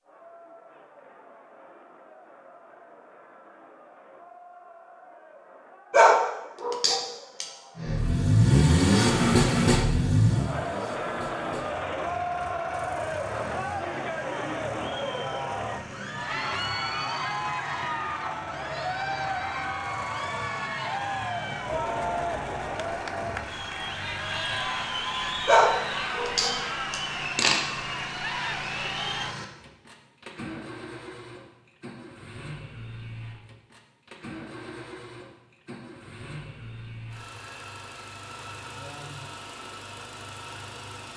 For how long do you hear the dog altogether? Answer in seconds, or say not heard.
4 s.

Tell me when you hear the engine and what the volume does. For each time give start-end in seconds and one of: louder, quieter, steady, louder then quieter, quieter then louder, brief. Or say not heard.
7.8-41.1 quieter.